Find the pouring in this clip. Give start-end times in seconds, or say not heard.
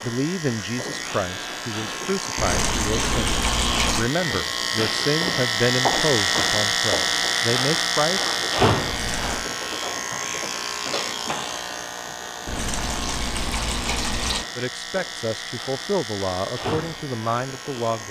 2.4-4.1, 8.8-9.5, 12.4-14.4.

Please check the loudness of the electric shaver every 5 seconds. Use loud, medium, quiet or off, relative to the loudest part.
medium, loud, medium, medium.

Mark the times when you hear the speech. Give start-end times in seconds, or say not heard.
0.0-8.3, 14.6-18.0.